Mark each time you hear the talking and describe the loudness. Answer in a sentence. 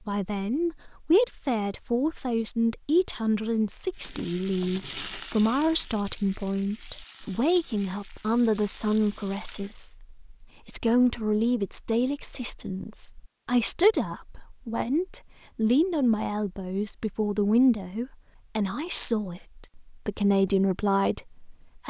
You can hear the talking from 0.1 to 21.8 s, at a steady volume.